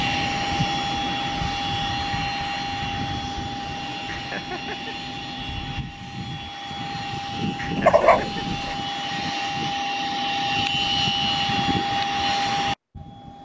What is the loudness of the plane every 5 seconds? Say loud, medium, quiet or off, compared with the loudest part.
loud, medium, loud.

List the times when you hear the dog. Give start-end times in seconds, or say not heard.
7.8-8.8.